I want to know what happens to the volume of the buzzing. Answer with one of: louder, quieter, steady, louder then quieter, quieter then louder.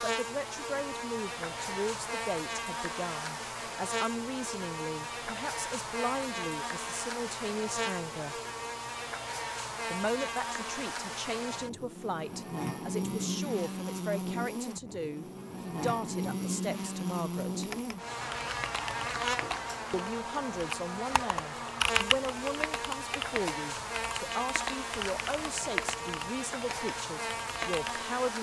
steady.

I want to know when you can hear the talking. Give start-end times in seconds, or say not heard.
0.0-8.4, 9.9-17.7, 19.9-28.3.